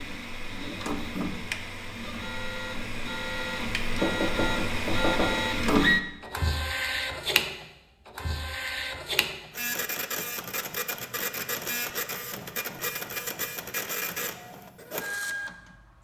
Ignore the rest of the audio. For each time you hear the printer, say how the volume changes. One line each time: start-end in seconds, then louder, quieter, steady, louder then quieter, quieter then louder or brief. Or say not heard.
0.0-15.9 louder then quieter.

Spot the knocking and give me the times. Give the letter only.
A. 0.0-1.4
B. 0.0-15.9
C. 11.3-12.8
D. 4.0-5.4
D.